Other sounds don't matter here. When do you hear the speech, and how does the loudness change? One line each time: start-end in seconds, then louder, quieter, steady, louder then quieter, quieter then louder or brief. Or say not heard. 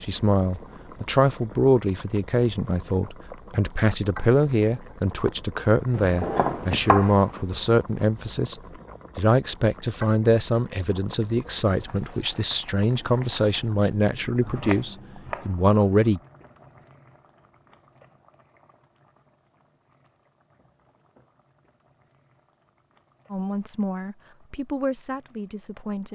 0.0-16.2 steady
23.3-26.1 brief.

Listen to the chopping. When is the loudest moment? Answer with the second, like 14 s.
7 s.